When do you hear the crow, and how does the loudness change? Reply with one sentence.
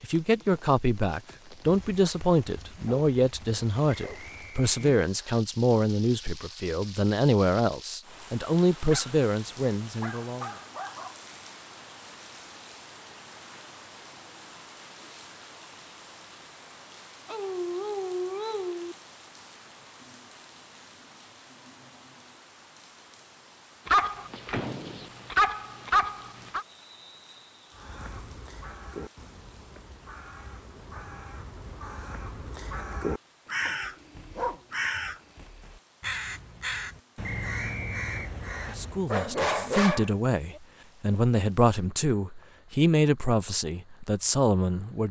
You can hear the crow from 27.7 to 39.1 s, getting louder.